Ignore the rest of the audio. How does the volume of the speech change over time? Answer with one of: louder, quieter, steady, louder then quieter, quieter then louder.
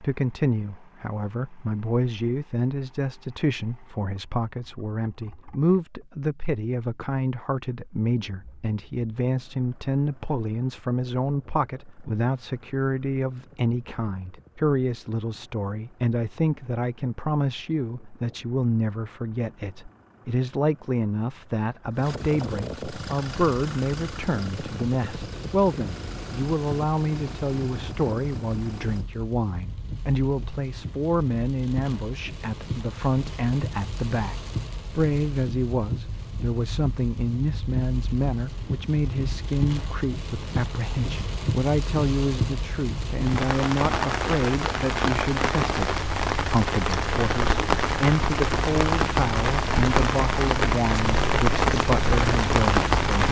steady.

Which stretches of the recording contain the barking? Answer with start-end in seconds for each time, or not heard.
not heard.